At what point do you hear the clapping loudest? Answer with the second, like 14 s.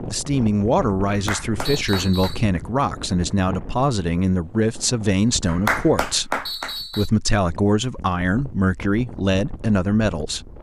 6 s.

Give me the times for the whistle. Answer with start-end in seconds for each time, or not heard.
1.6-2.5, 6.5-7.1.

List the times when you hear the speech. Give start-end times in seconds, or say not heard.
0.0-10.5.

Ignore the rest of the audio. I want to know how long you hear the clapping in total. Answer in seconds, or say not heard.
3 s.